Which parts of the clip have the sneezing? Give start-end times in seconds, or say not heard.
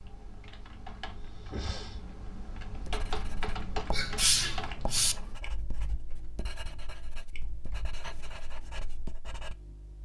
3.9-5.2.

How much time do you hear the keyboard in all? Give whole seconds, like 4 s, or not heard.
10 s.